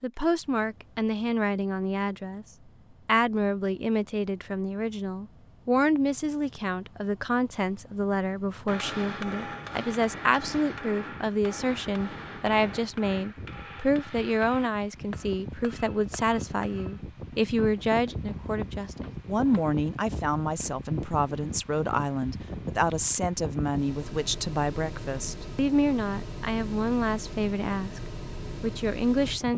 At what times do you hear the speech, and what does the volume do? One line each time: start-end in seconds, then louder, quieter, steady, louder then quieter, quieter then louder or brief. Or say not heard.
0.0-2.5 brief
3.0-29.5 steady.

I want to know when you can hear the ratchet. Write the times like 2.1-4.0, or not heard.
not heard.